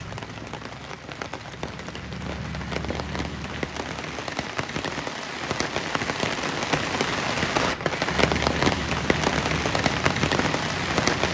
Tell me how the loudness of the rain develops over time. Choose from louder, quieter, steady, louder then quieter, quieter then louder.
louder.